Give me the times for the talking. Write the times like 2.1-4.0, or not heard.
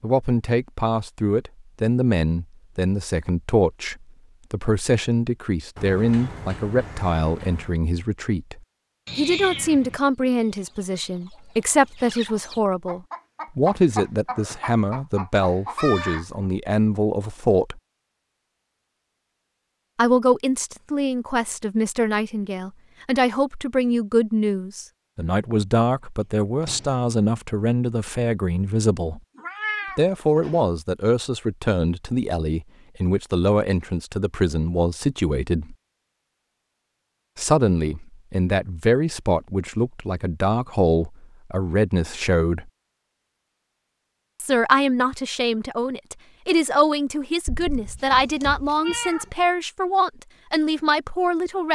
0.0-17.8, 19.9-29.2, 29.9-35.8, 37.4-42.7, 44.4-51.7.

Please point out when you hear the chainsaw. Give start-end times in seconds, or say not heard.
not heard.